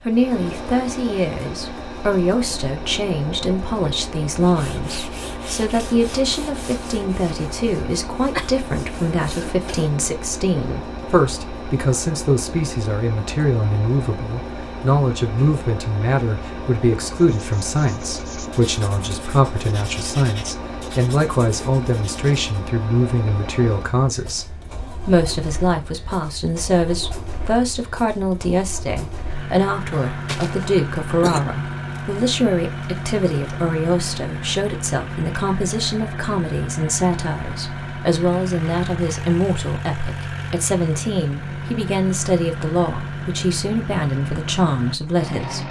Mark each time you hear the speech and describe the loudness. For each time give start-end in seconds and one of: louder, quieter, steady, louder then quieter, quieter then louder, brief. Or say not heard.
0.1-45.6 steady.